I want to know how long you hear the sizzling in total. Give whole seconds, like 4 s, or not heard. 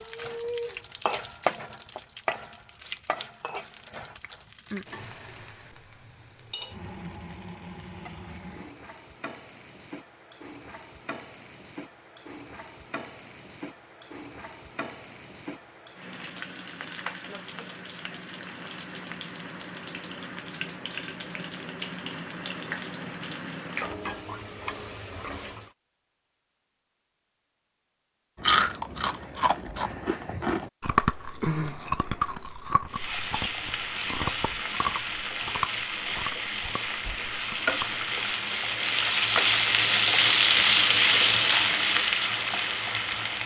36 s.